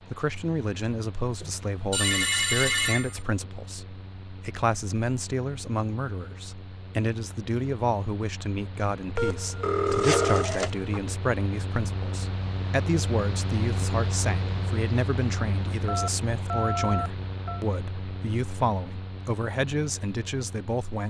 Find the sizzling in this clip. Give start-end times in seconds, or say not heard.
not heard.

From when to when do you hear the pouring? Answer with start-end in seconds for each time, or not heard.
not heard.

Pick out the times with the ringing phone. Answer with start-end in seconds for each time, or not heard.
1.4-3.2, 9.2-11.0, 15.8-17.6.